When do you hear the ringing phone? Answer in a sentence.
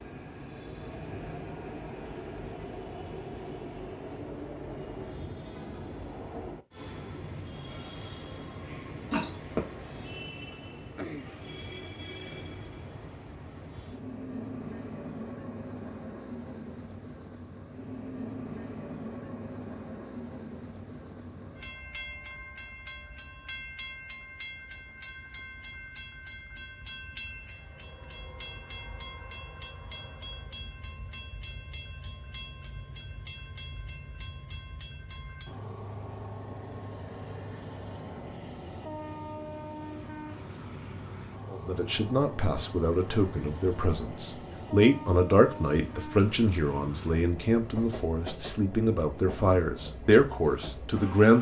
The ringing phone can be heard from 9.1 to 9.6 s.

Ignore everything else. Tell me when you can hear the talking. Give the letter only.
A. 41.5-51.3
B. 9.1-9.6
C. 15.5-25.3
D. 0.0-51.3
A.